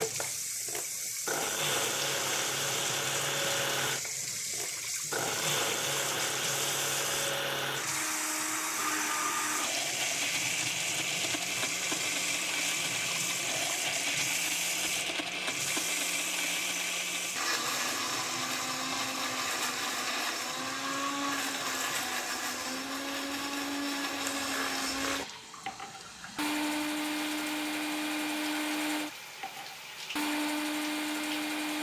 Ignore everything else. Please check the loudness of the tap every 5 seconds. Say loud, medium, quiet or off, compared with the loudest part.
loud, loud, loud, loud, medium, medium, medium.